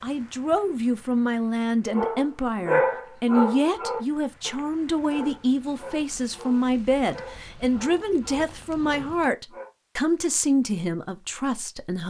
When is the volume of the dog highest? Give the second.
3 s.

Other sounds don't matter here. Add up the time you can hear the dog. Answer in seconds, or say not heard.
8 s.